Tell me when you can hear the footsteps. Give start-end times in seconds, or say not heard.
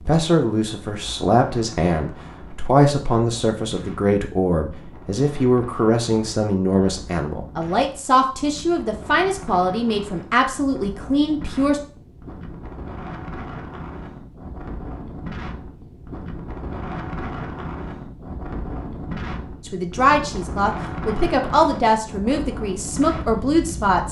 not heard.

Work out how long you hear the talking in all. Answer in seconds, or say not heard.
16 s.